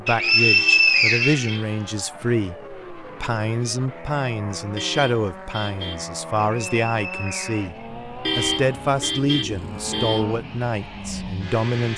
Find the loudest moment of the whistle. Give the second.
1 s.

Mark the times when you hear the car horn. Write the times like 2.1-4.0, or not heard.
0.4-1.7, 4.8-6.0, 8.2-10.2.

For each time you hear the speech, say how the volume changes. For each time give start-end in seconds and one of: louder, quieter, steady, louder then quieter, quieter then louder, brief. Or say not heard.
0.0-11.9 steady.